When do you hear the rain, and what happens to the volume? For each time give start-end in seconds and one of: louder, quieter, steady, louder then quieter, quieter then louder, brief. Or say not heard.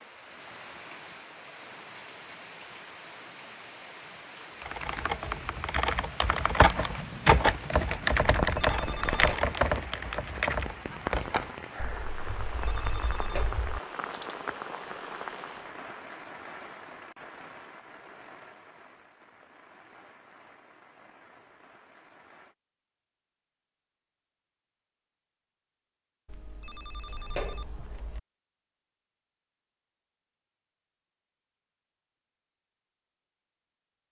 0.0-22.6 louder then quieter.